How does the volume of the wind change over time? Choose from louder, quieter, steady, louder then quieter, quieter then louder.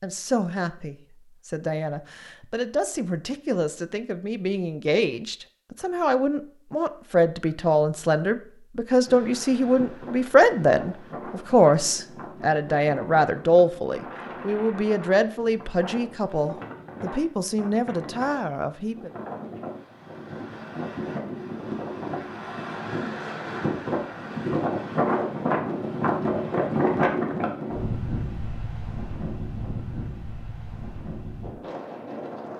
louder then quieter.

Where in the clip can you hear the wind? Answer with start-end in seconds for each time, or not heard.
9.1-32.5.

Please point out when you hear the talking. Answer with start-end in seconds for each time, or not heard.
0.0-19.1.